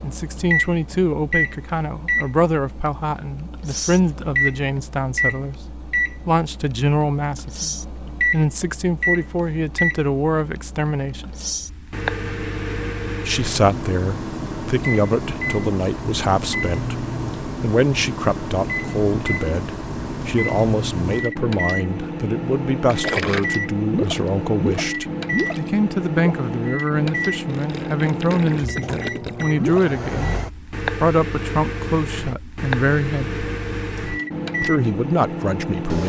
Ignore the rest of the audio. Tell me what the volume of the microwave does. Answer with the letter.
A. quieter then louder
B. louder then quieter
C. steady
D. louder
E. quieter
C.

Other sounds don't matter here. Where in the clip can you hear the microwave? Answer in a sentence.
The microwave can be heard from 0.0 to 36.0 s.